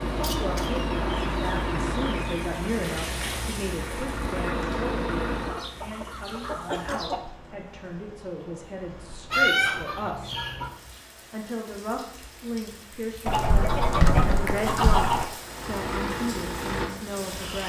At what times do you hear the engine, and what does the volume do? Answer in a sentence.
The engine can be heard from 0.0 to 5.6 s, getting quieter then louder; and briefly from 15.4 to 17.6 s.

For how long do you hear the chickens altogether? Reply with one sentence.
The chickens can be heard for 8 seconds in total.